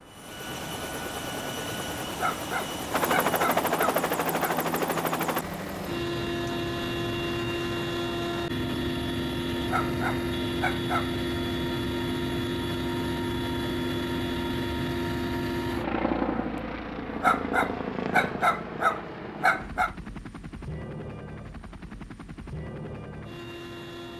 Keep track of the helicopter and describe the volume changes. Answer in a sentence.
The volume of the helicopter goes down.